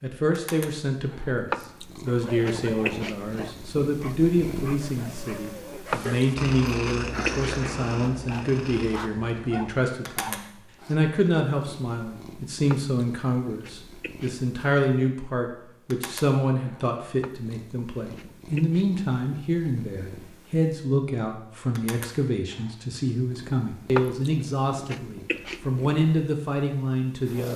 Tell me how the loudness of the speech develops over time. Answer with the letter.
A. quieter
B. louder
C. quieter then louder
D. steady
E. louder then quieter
D.